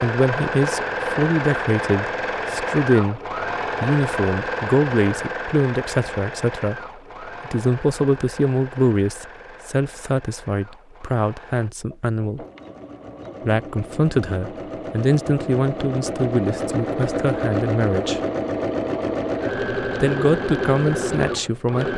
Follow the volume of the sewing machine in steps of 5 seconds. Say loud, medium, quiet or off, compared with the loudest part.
loud, medium, quiet, loud, loud.